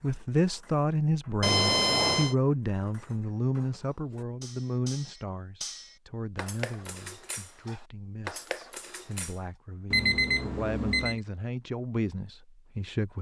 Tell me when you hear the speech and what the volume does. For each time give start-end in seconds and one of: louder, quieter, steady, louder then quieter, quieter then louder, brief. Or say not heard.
0.0-13.1 quieter then louder.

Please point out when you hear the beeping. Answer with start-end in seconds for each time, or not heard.
1.4-2.4, 9.9-11.2.